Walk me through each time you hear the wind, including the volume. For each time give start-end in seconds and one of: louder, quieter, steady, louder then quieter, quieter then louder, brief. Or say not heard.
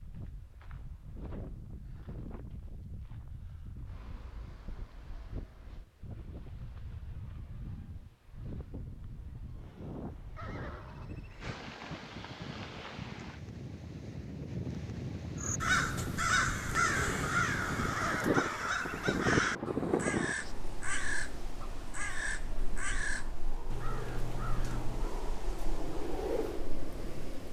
0.0-27.4 louder then quieter.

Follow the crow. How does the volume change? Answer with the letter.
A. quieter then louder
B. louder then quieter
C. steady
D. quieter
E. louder
D.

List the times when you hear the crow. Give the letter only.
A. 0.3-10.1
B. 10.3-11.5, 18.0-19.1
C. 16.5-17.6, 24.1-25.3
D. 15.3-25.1
D.